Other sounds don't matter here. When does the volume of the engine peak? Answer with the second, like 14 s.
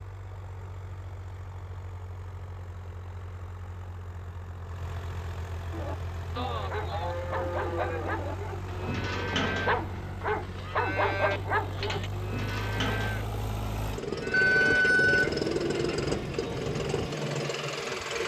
16 s.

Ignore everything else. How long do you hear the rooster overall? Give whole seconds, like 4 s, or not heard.
2 s.